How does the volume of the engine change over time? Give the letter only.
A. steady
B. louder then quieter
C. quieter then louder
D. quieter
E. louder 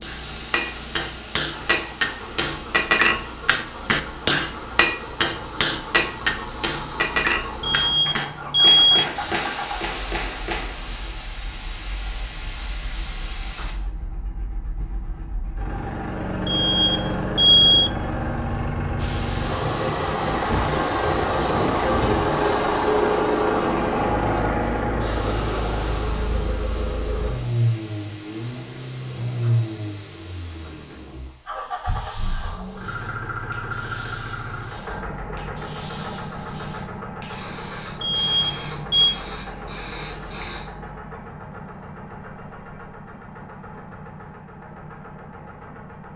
B.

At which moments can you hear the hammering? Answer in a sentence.
You can hear the hammering from 0.0 to 11.1 s.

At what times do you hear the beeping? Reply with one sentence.
The beeping can be heard from 7.6 to 9.1 s, from 16.4 to 17.9 s and from 38.0 to 39.1 s.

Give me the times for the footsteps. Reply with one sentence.
You can't hear the footsteps here.